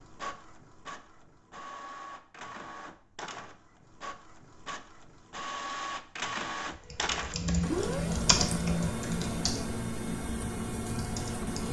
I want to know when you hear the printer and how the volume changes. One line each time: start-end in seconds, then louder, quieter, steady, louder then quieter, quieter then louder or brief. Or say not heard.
0.0-11.6 louder.